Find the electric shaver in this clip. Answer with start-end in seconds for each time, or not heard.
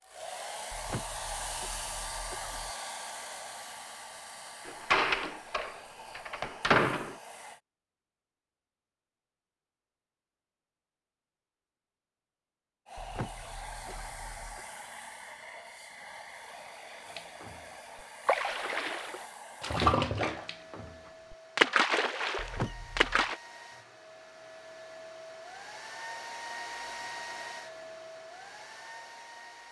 not heard.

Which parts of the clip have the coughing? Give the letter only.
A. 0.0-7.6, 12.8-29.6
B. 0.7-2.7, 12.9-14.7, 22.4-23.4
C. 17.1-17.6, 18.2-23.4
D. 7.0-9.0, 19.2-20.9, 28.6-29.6
B.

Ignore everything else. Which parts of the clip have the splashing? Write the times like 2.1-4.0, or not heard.
17.1-17.6, 18.2-23.4.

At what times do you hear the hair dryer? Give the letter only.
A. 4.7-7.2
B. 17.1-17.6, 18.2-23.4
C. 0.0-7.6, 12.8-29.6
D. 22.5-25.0
C.